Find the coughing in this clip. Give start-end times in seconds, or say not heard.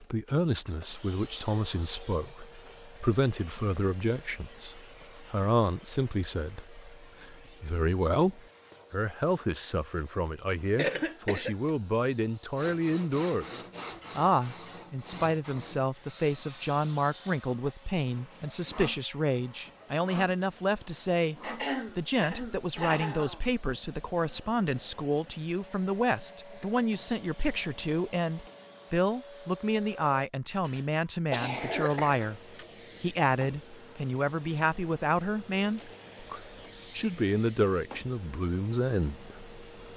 10.8-11.7, 21.4-23.4, 30.6-32.6.